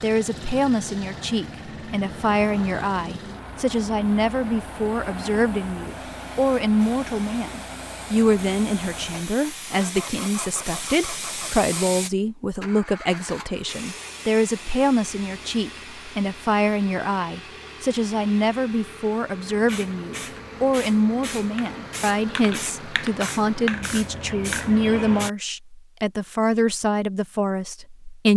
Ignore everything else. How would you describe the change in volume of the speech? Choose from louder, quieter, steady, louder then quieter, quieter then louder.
steady.